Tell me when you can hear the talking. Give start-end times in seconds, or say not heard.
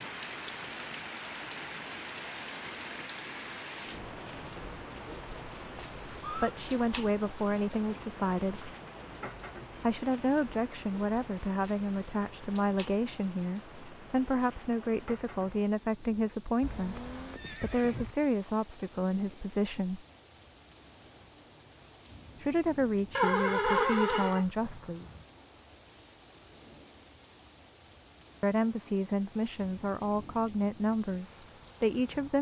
6.2-8.7, 9.8-20.0, 22.4-25.1, 28.4-32.3.